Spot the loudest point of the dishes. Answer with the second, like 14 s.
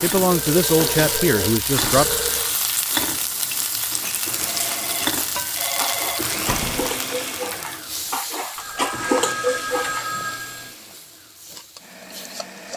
9 s.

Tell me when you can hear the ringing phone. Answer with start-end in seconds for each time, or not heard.
0.3-2.5, 4.5-6.3, 8.6-10.8.